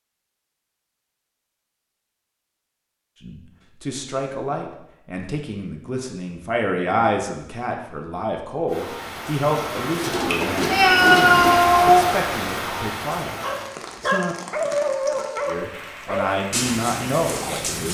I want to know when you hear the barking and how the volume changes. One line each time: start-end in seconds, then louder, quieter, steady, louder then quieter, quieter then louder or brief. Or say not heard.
13.3-17.8 quieter.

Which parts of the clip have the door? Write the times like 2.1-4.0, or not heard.
not heard.